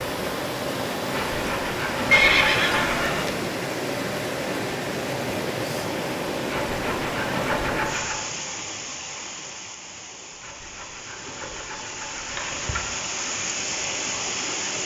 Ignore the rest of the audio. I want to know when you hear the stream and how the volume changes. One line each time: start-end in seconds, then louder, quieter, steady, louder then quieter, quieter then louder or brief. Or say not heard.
0.0-14.8 quieter then louder.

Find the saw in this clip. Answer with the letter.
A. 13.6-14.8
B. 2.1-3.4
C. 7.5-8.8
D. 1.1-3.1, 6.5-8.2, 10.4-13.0
D.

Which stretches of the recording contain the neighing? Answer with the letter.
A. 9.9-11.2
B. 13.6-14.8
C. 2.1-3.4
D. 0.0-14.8
C.